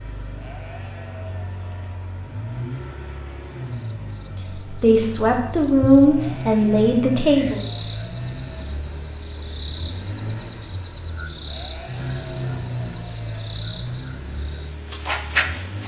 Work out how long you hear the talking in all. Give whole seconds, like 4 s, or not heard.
3 s.